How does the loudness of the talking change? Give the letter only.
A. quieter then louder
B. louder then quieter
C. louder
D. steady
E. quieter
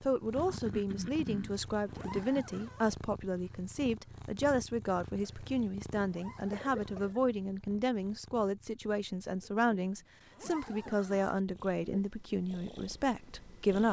D.